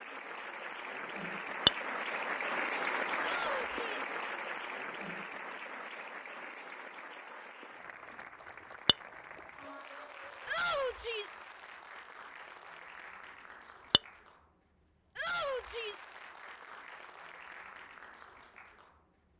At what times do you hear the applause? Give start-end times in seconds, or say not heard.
0.0-19.3.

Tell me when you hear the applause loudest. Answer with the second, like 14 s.
3 s.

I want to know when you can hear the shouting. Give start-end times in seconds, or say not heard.
3.2-4.1, 10.4-11.4, 15.2-16.1.